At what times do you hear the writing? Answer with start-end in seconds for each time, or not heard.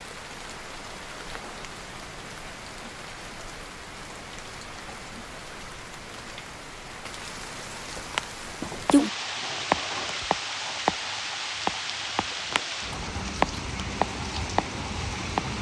8.1-15.5.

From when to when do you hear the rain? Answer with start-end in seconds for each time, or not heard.
0.0-15.5.